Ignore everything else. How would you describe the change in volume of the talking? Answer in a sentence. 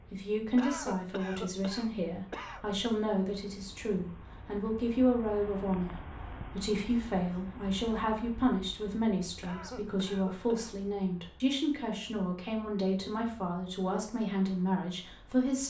The volume of the talking stays about the same.